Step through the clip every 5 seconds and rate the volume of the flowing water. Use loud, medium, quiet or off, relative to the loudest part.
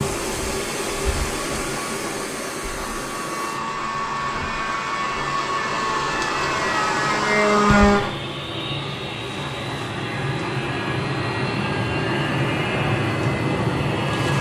loud, loud, off.